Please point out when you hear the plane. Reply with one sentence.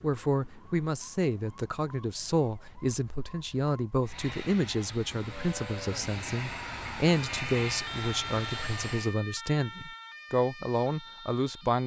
The plane can be heard from 4.0 to 9.2 s.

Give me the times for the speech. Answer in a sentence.
You can hear the speech from 0.0 to 11.8 s.